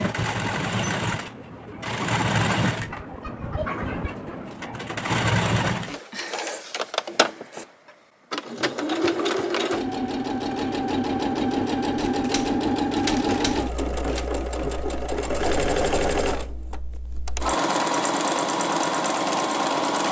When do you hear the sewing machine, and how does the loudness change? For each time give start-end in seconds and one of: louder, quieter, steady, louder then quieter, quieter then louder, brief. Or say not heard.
0.0-20.0 steady.